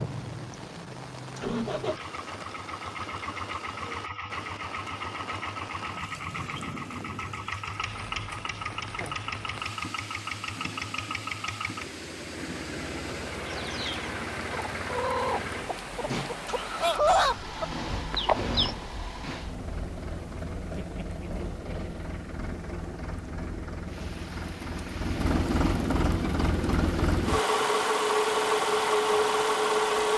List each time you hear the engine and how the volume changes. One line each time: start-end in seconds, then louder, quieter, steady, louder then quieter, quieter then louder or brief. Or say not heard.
0.0-30.1 louder.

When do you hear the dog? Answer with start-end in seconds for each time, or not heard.
not heard.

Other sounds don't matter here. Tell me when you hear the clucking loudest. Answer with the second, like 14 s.
17 s.